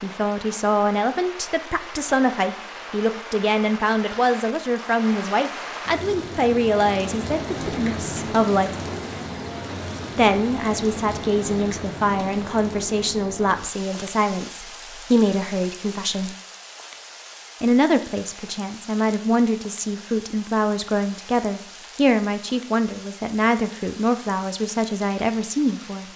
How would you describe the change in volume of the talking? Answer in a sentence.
The loudness of the talking stays about the same.